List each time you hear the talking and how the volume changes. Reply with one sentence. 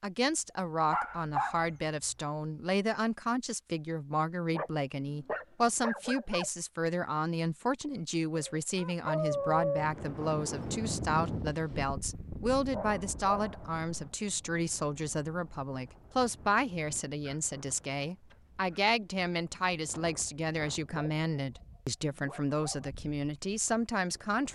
You can hear the talking from 0.0 to 24.5 s, at a steady volume.